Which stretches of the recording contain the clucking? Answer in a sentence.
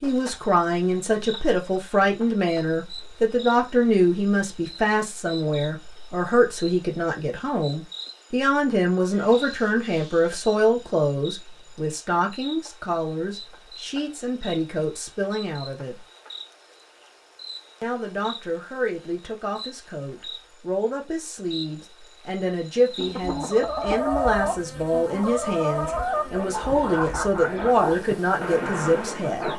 You can hear the clucking from 22.9 to 29.5 s.